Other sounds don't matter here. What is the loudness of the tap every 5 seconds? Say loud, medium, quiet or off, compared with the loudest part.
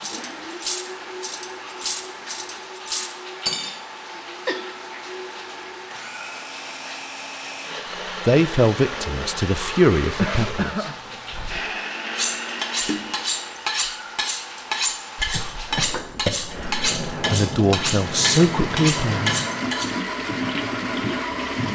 medium, medium, medium, loud, loud.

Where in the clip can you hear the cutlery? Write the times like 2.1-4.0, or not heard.
0.0-3.8, 12.2-19.9.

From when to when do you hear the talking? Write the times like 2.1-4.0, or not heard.
8.2-10.8, 17.1-19.4.